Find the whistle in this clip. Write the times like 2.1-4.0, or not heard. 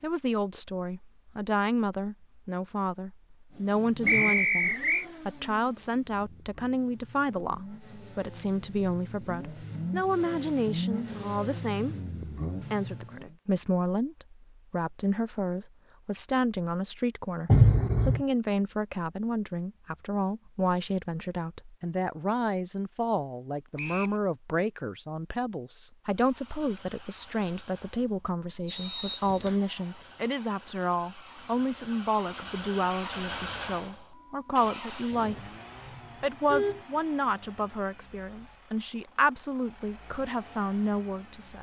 4.0-5.0, 23.8-24.2, 28.6-29.6.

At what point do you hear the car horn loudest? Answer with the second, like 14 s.
18 s.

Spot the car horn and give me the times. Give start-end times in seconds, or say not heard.
17.4-18.2, 35.3-36.9.